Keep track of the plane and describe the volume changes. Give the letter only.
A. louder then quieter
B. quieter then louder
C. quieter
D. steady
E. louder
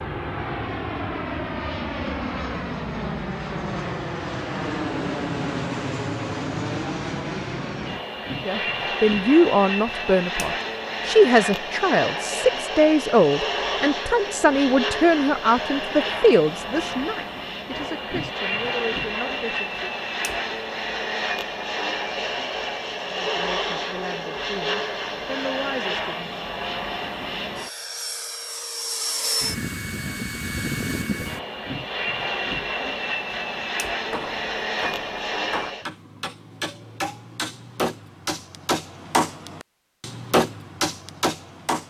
D.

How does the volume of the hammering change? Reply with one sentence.
The volume of the hammering goes up.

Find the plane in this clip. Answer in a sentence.
You can hear the plane from 0.0 to 35.9 s.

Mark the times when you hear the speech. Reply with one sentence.
The speech can be heard from 8.4 to 20.0 s and from 23.1 to 26.4 s.